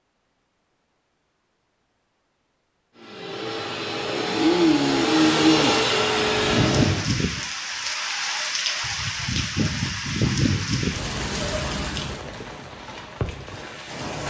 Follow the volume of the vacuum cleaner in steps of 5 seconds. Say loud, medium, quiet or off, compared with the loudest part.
loud, loud, off.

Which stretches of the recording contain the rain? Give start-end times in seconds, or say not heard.
6.3-14.2.